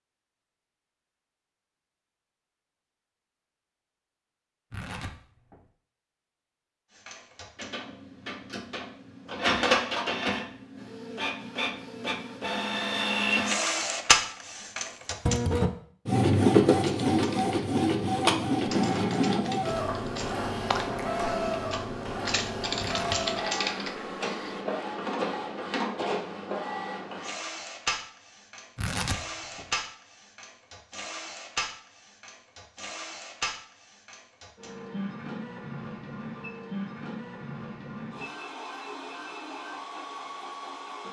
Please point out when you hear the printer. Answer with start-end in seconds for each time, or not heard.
7.0-41.0.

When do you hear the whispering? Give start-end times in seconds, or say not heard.
not heard.